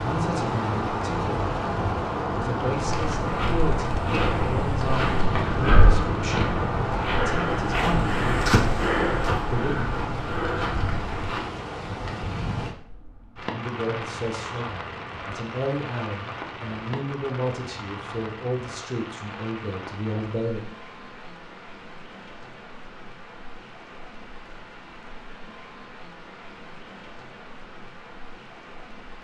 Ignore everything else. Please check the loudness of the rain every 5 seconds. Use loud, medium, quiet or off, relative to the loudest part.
loud, loud, medium, medium, quiet, quiet.